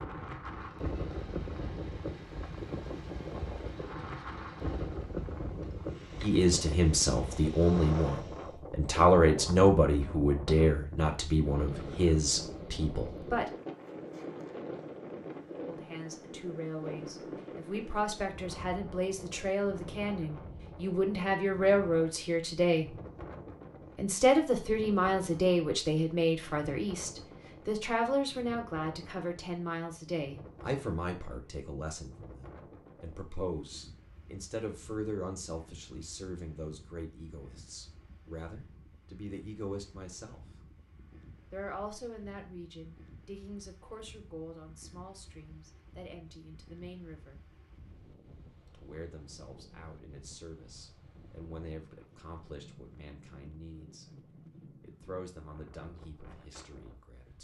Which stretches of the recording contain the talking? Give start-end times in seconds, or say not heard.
6.2-13.4, 15.6-22.9, 23.9-40.6, 41.5-47.5, 48.7-54.1, 54.8-57.3.